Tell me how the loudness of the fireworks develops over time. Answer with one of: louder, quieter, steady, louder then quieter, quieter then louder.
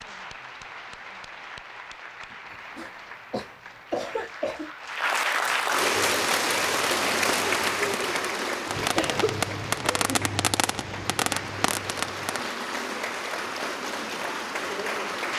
louder.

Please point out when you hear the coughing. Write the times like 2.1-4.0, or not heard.
2.5-4.7, 8.9-10.3.